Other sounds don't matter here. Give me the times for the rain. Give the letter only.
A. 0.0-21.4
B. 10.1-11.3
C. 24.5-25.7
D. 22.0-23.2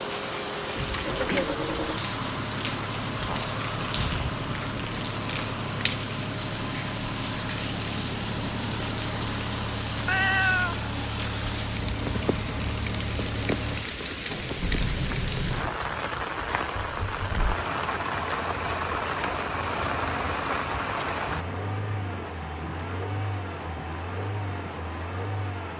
A.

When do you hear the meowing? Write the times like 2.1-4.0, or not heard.
10.1-11.3.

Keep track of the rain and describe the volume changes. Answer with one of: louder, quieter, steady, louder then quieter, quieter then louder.
steady.